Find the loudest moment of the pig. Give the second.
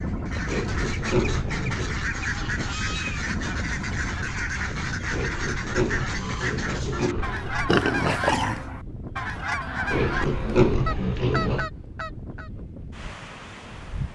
11 s.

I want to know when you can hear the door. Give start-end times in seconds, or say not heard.
not heard.